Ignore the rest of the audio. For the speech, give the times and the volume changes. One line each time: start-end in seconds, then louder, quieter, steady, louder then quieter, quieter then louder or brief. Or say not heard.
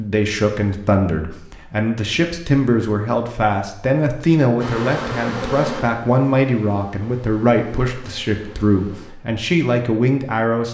0.0-10.6 steady.